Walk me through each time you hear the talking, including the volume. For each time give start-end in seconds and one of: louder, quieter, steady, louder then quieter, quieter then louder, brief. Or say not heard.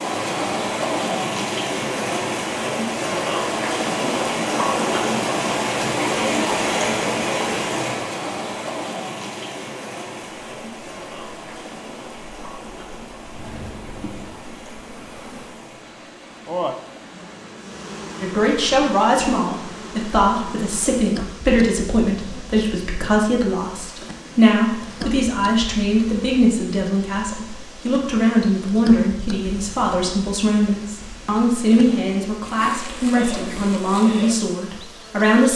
18.2-35.5 steady.